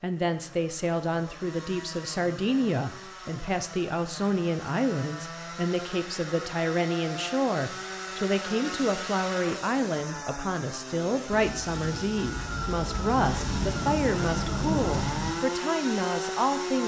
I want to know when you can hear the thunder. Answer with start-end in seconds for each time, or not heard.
11.3-15.3.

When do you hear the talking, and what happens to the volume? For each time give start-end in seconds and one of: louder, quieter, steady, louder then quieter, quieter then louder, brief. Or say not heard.
0.0-16.8 steady.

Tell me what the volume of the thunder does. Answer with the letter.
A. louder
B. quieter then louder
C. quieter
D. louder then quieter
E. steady
A.